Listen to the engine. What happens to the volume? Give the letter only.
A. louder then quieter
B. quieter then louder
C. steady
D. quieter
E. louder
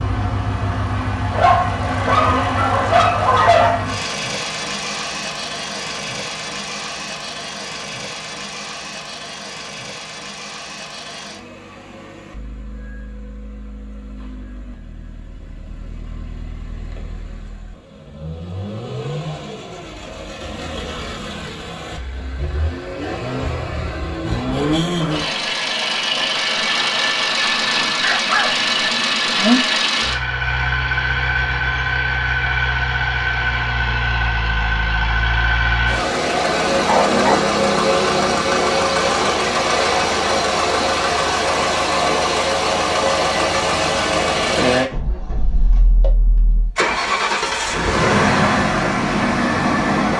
B.